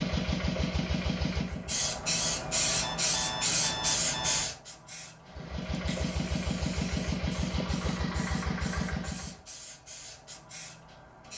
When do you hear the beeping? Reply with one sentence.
The beeping can be heard from 2.0 to 4.5 s.